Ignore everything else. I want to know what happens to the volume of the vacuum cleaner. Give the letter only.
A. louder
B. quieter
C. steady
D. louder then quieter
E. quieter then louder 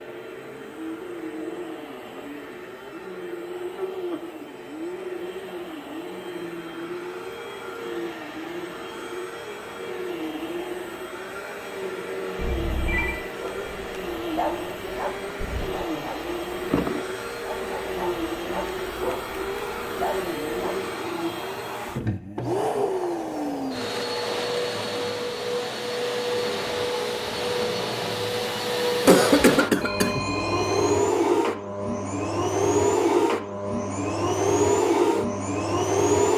A.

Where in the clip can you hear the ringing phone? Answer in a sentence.
You can hear the ringing phone from 12.3 to 13.2 s and from 29.8 to 30.9 s.